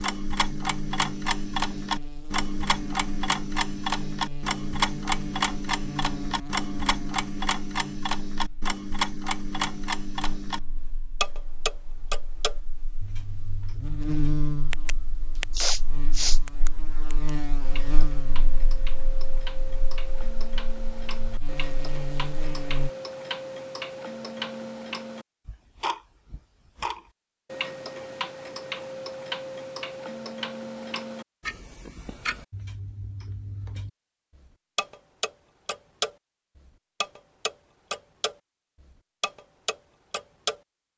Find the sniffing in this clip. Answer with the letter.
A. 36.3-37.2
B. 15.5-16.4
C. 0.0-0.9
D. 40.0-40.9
B.